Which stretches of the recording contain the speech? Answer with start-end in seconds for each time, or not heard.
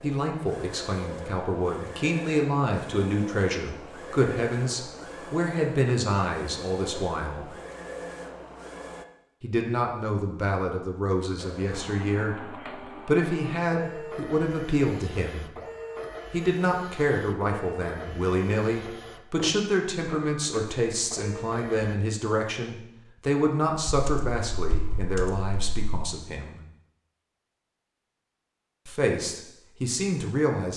0.0-7.5, 9.4-12.3, 13.1-15.5, 16.3-26.6, 28.9-30.7.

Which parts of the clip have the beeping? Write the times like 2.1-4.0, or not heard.
not heard.